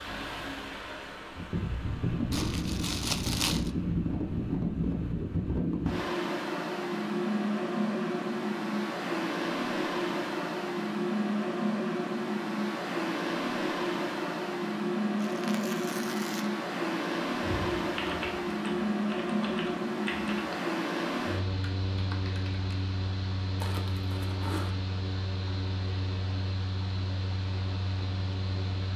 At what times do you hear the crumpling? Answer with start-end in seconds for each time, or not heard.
2.3-3.7, 15.2-16.5, 23.6-24.8.